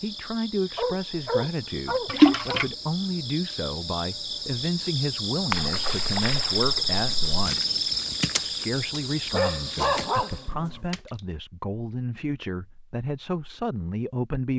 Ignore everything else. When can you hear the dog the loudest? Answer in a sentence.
The volume of the dog peaks at 10 seconds.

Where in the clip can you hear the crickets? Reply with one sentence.
The crickets can be heard from 0.0 to 10.6 s.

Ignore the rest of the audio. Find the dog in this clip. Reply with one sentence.
You can hear the dog from 0.8 to 2.6 s and from 9.3 to 10.8 s.